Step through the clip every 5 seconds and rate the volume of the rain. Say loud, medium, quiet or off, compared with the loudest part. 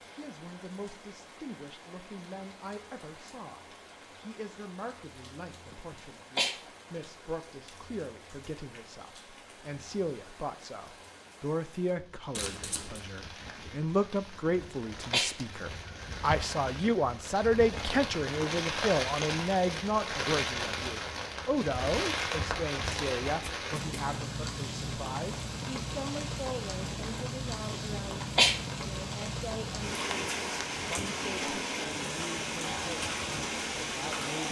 quiet, quiet, quiet, loud, loud, loud, loud.